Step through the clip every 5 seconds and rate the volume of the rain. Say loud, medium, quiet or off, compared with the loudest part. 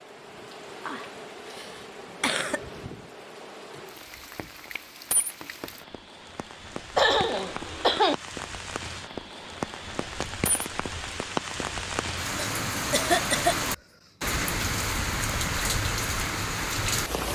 quiet, medium, loud, loud.